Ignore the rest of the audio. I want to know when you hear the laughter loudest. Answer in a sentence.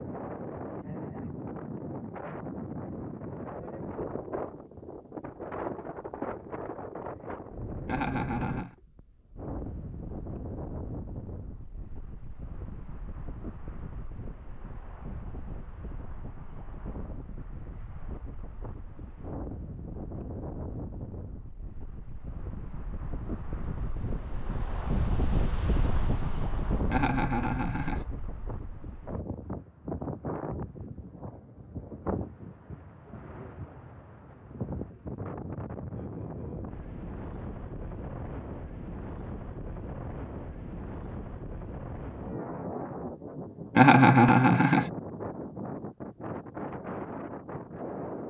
The volume of the laughter peaks at 44 seconds.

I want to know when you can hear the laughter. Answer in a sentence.
The laughter can be heard from 7.8 to 8.8 s, from 26.9 to 28.0 s and from 43.8 to 44.9 s.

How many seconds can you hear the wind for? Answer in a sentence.
You can hear the wind for 48 seconds altogether.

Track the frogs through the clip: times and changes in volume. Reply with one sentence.
The frogs can't be heard in this clip.